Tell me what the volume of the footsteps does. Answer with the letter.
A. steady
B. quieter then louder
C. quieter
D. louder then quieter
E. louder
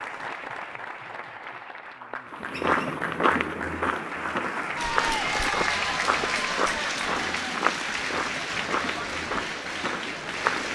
C.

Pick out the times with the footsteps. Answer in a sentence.
The footsteps can be heard from 2.5 to 10.7 s.